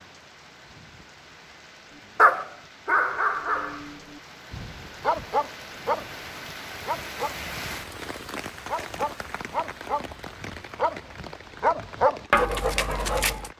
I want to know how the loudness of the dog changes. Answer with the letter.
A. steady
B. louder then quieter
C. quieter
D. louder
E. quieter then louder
E.